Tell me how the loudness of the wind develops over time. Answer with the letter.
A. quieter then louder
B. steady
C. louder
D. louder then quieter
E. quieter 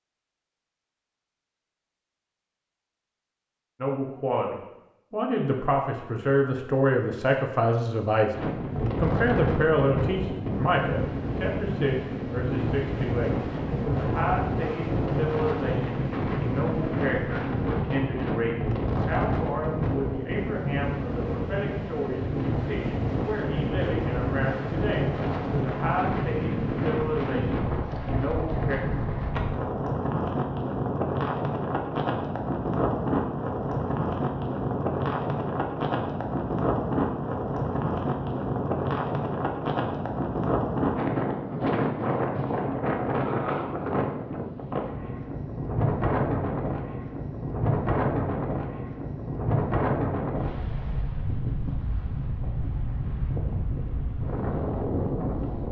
B.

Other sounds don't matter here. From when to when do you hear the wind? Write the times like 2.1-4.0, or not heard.
8.3-55.6.